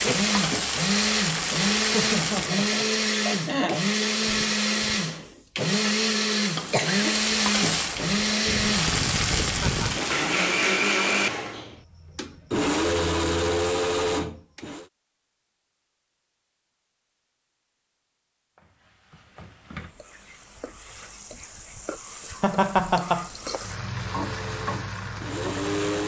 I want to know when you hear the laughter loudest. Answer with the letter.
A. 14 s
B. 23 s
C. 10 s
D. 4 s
B.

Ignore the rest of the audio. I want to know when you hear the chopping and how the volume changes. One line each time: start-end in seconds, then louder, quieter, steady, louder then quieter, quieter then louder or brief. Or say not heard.
not heard.